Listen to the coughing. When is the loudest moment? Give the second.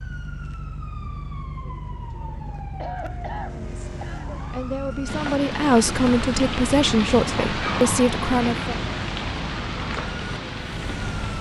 3 s.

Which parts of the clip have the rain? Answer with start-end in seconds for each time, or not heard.
5.0-11.3.